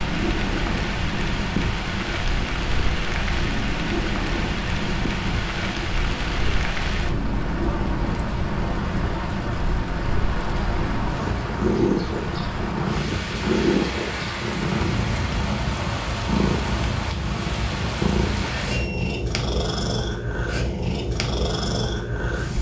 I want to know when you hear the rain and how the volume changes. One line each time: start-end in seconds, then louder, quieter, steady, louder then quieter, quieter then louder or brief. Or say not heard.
0.0-18.9 steady.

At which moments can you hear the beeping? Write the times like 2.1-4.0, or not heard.
18.7-19.2.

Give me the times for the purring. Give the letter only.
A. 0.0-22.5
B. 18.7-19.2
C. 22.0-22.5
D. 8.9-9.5
A.